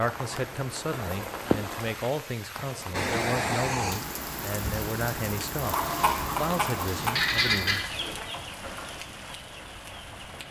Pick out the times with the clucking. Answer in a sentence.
The clucking can be heard from 5.6 to 10.3 s.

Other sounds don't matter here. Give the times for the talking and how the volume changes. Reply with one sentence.
The talking can be heard from 0.0 to 7.8 s, at a steady volume.